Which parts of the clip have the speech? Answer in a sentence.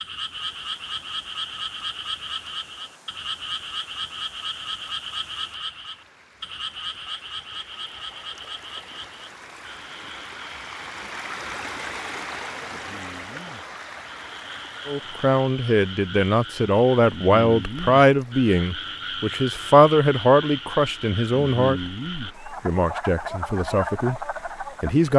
The speech can be heard from 14.8 to 25.1 s.